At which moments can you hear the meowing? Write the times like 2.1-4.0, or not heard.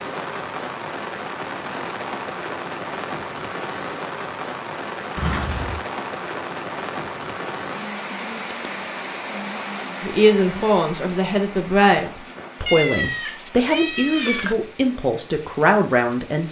5.2-5.8, 12.7-14.6.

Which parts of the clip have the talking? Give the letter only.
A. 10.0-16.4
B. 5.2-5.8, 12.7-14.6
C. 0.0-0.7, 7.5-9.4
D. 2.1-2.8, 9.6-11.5
A.